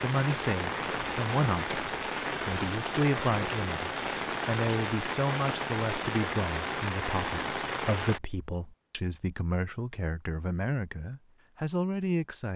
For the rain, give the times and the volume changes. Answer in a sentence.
The rain can be heard from 0.0 to 8.2 s, at a steady volume.